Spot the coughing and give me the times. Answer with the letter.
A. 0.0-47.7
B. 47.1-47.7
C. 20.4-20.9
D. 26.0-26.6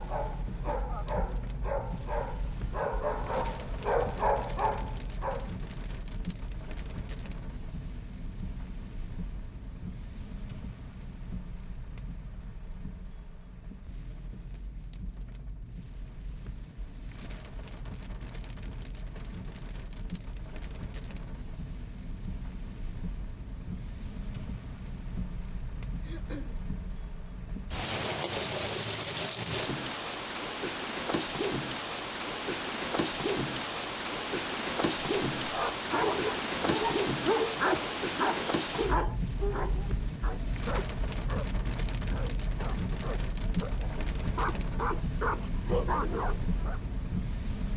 D.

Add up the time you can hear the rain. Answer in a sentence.
You can hear the rain for 48 seconds altogether.